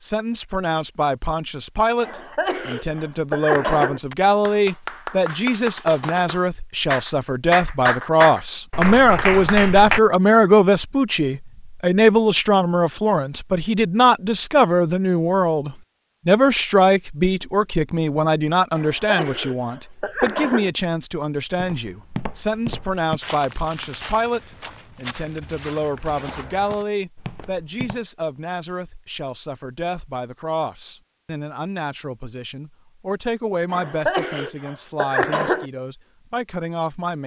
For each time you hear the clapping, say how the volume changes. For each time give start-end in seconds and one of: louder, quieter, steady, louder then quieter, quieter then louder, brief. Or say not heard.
3.8-10.0 louder.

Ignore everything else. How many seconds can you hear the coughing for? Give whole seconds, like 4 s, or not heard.
6 s.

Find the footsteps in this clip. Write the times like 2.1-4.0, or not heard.
21.6-28.0.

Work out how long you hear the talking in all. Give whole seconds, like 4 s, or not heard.
37 s.